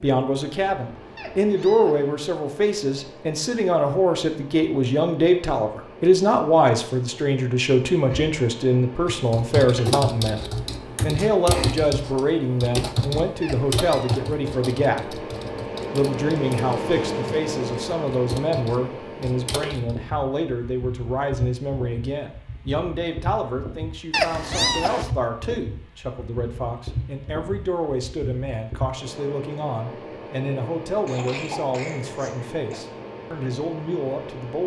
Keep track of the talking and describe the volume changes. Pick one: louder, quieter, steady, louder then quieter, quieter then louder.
quieter.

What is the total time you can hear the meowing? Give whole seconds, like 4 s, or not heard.
3 s.